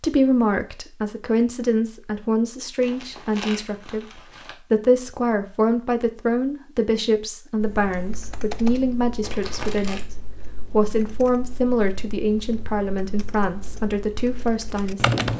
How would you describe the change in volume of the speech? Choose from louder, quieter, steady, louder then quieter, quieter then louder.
steady.